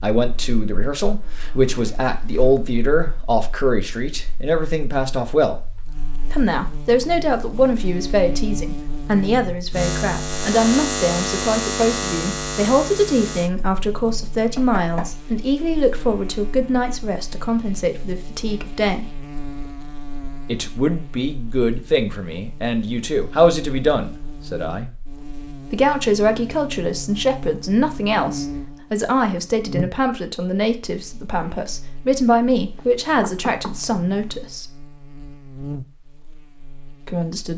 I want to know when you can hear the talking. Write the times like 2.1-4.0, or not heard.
0.0-5.5, 6.3-19.1, 20.4-24.9, 25.7-34.7, 37.0-37.5.